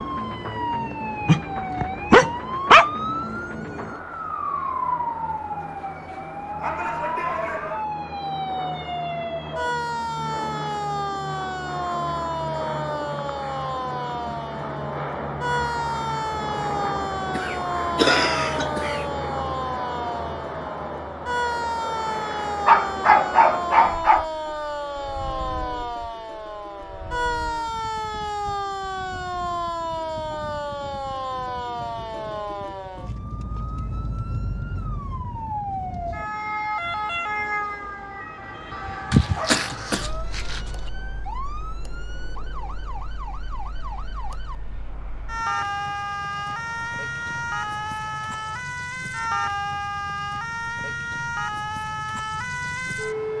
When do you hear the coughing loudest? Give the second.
18 s.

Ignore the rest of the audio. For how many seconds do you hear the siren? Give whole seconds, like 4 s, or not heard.
53 s.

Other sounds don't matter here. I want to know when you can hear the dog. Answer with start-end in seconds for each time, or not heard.
1.2-2.9, 22.6-24.2, 39.1-40.7.